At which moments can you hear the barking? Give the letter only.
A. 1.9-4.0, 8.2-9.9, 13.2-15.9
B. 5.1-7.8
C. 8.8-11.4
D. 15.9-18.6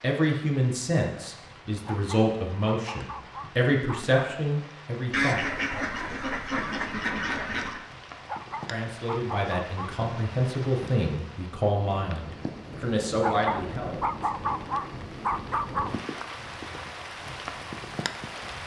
A.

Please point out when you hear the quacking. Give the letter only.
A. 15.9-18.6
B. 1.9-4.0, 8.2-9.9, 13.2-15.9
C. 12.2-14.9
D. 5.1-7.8
D.